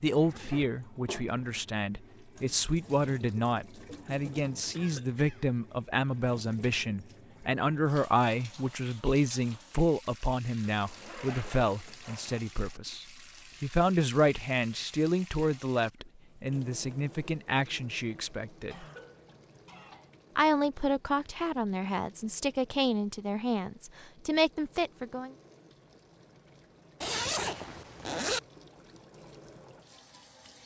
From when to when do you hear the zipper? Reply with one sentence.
The zipper can be heard from 0.1 to 1.6 s, from 10.7 to 12.4 s and from 27.0 to 28.4 s.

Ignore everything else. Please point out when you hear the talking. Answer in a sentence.
The talking can be heard from 0.0 to 18.9 s and from 20.4 to 25.4 s.